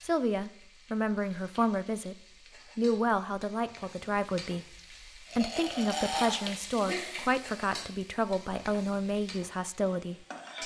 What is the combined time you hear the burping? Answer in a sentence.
You can hear the burping for 2 seconds altogether.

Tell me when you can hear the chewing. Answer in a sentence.
The chewing can't be heard in this clip.